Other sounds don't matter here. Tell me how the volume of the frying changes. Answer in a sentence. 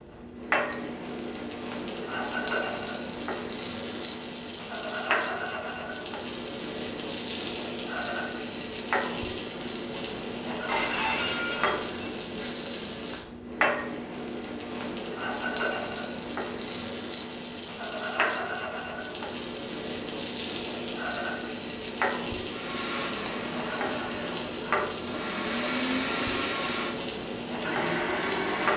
The loudness of the frying stays about the same.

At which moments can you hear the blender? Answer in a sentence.
The blender can be heard from 22.4 to 28.7 s.